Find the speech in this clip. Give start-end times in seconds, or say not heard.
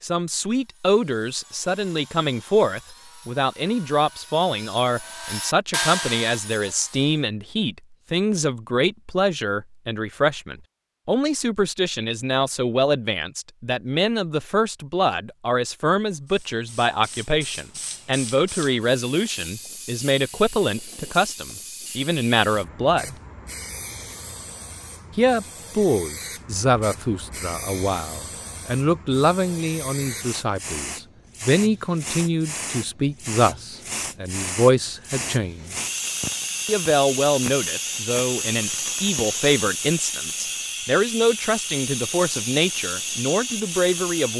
0.0-23.1, 25.1-35.8, 36.6-44.3.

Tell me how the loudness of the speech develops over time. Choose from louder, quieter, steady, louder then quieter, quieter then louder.
steady.